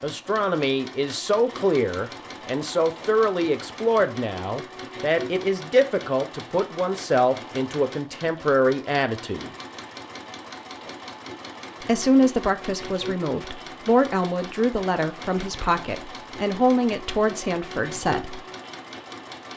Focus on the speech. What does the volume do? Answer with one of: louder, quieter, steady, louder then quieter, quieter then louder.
steady.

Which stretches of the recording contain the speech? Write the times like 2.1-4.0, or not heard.
0.0-9.5, 11.8-18.4.